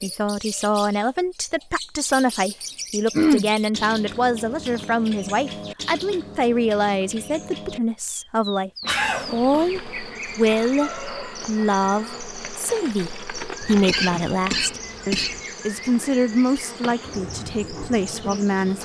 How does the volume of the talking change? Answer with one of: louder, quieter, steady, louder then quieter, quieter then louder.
steady.